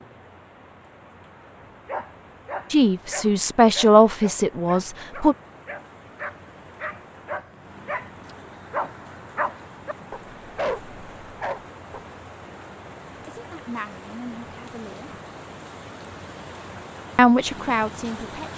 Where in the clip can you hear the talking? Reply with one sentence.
The talking can be heard from 2.7 to 5.3 s, from 13.2 to 15.1 s and from 17.1 to 18.5 s.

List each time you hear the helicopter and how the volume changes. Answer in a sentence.
The helicopter can't be heard in this clip.